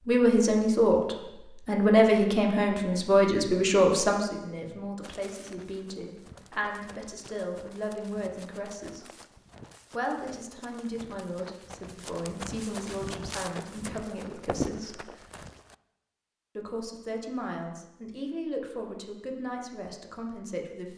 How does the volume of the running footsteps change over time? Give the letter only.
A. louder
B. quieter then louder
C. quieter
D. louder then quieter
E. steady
A.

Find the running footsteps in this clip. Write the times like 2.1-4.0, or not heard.
5.0-15.8.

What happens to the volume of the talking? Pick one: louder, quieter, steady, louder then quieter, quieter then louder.
quieter.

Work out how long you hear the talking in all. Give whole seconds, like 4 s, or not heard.
19 s.